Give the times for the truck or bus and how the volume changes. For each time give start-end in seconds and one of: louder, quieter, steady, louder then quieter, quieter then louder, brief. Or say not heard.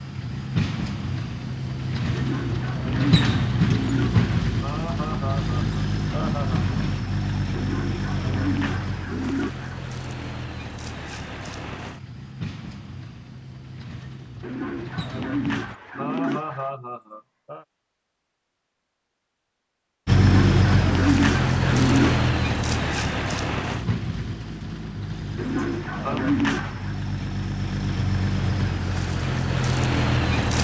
0.0-15.8 quieter
20.1-30.5 quieter then louder.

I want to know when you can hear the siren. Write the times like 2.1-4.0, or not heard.
not heard.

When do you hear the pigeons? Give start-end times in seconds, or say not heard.
2.1-4.3, 7.5-9.8, 14.4-16.7, 20.1-22.3, 25.4-27.0.